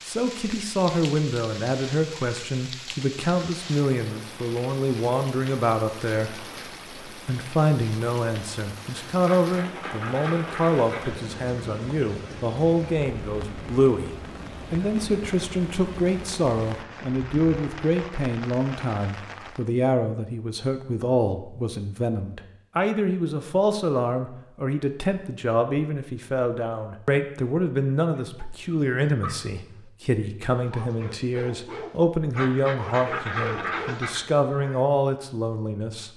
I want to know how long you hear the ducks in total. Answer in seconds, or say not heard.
4 s.